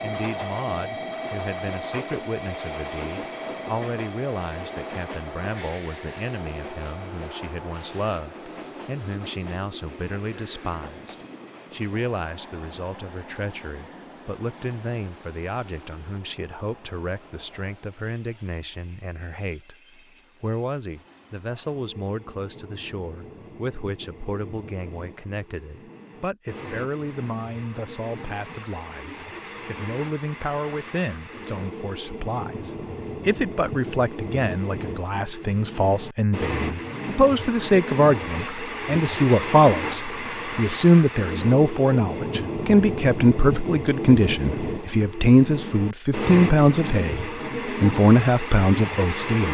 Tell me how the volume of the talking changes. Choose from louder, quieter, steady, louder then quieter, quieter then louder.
louder.